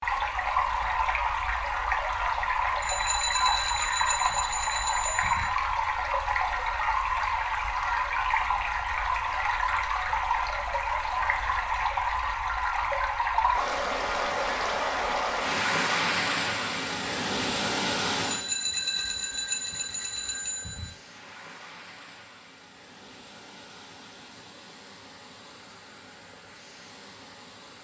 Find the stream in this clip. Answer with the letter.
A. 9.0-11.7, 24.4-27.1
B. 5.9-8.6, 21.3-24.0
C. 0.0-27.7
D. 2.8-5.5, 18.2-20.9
C.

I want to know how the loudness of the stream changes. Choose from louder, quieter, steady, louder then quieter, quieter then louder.
quieter.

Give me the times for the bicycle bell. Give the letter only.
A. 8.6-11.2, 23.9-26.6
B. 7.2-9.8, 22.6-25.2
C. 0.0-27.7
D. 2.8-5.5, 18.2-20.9
D.